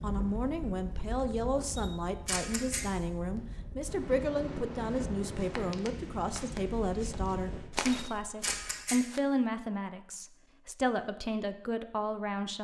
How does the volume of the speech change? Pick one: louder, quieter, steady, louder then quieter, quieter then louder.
steady.